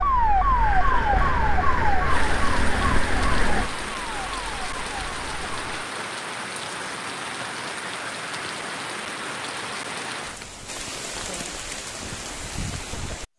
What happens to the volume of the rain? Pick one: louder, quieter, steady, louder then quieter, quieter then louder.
steady.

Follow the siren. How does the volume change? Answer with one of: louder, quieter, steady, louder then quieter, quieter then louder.
quieter.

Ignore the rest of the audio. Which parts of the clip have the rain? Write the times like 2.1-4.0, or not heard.
2.0-13.2.